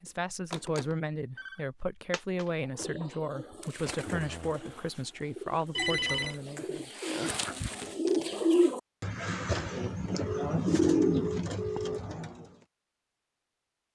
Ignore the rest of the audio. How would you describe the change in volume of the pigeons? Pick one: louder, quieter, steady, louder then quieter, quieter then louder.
louder.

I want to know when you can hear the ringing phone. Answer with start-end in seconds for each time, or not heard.
0.5-1.6, 5.8-6.3, 10.2-12.2.